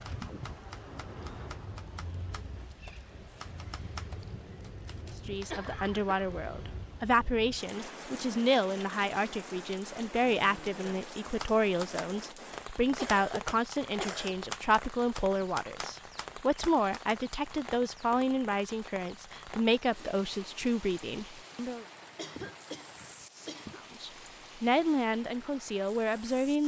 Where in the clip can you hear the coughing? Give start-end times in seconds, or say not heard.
5.5-6.2, 12.9-14.3, 22.1-23.8.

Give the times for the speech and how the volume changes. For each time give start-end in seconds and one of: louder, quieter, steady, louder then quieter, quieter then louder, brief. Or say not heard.
5.2-21.9 steady
23.8-26.6 brief.